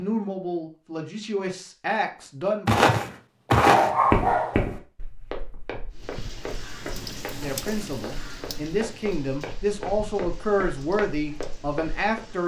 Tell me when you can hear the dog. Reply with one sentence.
You can hear the dog from 2.8 to 4.7 s.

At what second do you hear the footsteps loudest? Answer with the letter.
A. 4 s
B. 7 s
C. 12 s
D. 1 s
A.